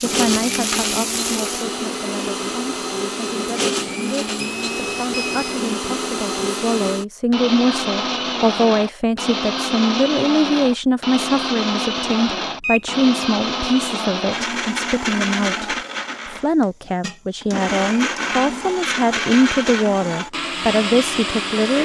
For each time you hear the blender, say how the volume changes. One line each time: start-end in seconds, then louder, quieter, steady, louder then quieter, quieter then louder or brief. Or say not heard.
0.0-21.7 steady.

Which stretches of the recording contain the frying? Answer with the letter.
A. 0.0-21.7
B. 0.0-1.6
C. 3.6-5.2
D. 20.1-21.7
B.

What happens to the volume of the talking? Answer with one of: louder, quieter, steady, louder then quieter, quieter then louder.
louder.